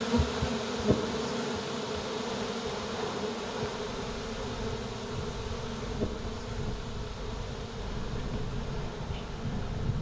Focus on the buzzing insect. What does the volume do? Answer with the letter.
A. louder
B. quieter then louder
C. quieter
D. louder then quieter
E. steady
C.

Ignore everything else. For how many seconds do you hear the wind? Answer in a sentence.
The wind can be heard for 10 seconds in total.